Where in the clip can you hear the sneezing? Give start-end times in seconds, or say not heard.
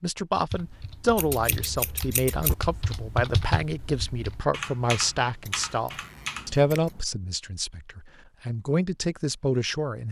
not heard.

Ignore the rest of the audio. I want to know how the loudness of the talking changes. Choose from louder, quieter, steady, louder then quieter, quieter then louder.
steady.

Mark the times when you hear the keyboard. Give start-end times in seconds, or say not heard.
0.5-6.7.